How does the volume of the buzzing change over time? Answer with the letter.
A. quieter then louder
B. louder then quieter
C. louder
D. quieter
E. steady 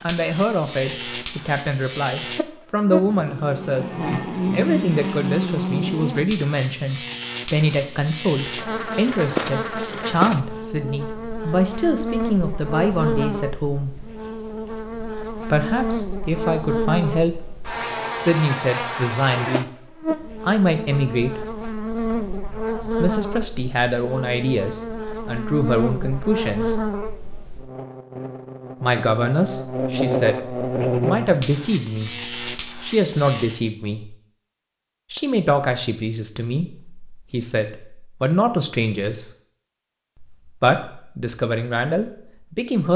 E.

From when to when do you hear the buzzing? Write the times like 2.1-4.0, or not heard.
0.0-33.6.